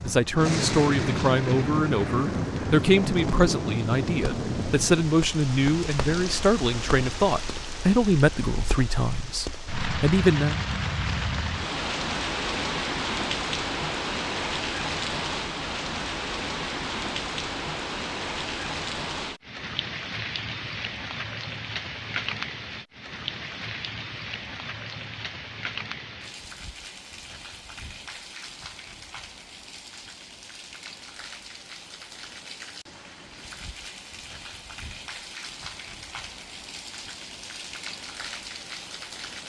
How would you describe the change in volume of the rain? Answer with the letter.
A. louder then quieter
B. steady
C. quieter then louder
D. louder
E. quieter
E.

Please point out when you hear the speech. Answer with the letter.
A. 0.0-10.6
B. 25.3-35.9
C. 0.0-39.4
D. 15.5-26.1
A.